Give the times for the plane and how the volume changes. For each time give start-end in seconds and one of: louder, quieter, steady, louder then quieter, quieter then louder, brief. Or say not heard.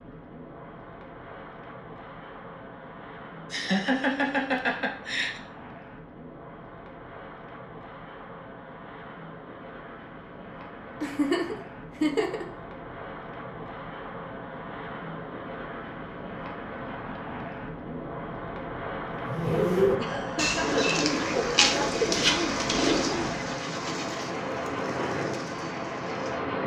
0.0-26.6 louder.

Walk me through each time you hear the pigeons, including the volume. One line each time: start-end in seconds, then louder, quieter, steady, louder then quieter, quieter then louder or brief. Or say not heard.
19.2-26.4 quieter.